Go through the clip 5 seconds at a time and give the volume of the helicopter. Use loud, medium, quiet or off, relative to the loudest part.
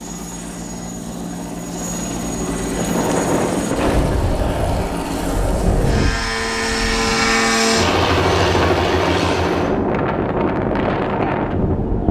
medium, loud, medium.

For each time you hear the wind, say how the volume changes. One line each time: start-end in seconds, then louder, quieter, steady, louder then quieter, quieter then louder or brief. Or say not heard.
2.7-12.0 quieter then louder.